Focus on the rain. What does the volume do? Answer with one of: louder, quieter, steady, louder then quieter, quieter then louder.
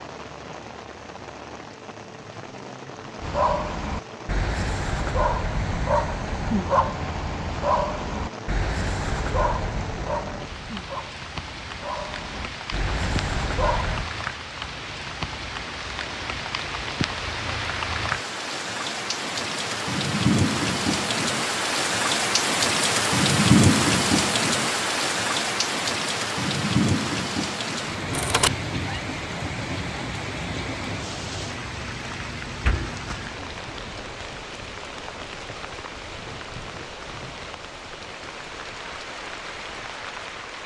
louder then quieter.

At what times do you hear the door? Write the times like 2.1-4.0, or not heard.
32.5-33.5.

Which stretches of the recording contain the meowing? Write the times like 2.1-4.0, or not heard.
28.1-29.0.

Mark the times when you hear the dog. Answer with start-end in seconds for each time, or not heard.
3.2-14.1.